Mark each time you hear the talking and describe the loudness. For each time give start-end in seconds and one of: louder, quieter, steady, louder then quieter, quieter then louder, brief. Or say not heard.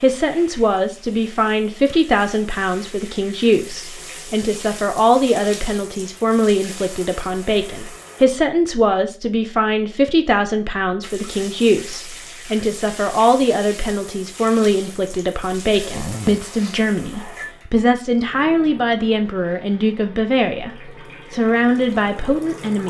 0.0-22.8 steady.